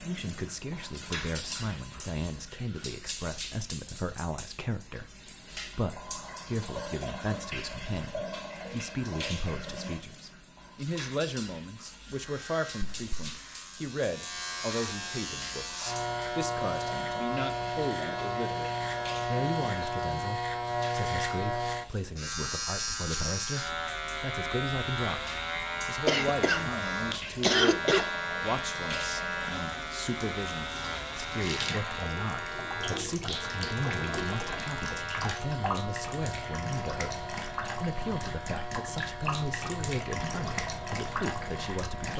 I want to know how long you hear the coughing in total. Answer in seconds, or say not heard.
2 s.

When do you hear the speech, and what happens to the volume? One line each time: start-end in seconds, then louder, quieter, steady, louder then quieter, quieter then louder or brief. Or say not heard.
0.0-42.1 steady.